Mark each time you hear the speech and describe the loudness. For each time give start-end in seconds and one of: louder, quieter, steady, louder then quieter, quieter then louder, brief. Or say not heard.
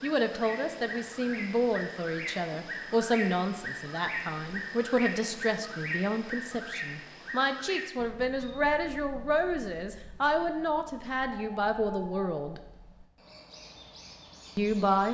0.0-12.6 steady
14.6-15.0 brief.